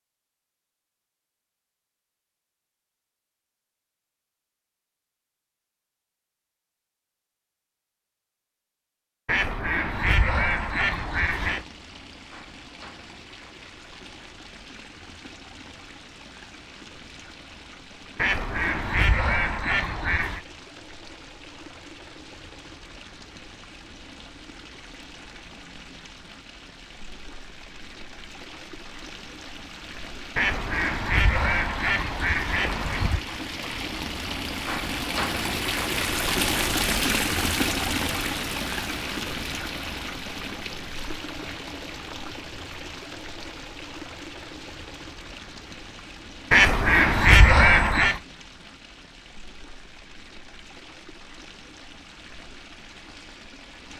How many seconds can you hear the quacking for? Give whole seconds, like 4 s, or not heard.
9 s.